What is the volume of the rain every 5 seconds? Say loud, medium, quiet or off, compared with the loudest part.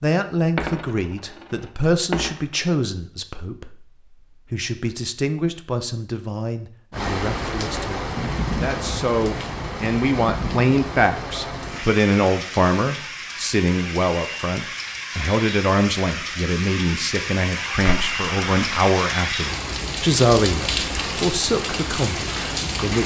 off, loud, medium, loud, loud.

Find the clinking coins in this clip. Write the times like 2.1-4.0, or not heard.
0.6-2.4, 17.8-18.9.